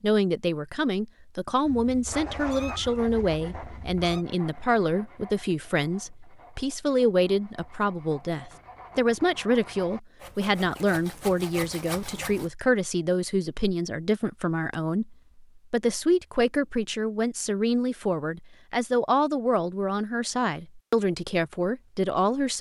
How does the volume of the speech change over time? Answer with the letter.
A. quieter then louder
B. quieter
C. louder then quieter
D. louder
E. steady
E.